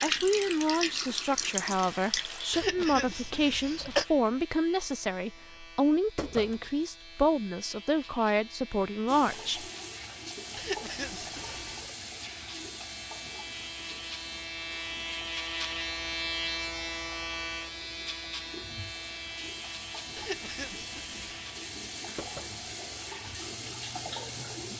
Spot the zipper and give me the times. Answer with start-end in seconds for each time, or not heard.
not heard.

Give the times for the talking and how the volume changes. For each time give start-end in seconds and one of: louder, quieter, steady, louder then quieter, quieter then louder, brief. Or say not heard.
0.0-9.7 steady.